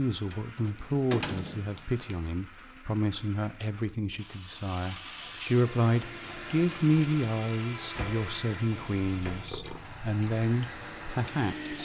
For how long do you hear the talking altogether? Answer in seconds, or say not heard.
12 s.